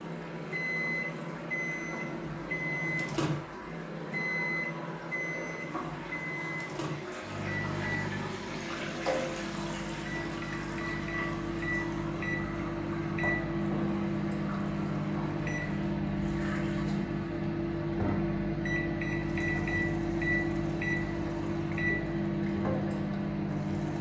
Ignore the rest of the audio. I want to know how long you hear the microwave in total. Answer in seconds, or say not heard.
24 s.